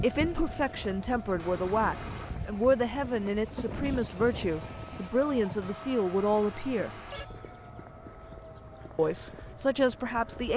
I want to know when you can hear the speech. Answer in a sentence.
The speech can be heard from 0.0 to 6.9 s and from 8.9 to 10.5 s.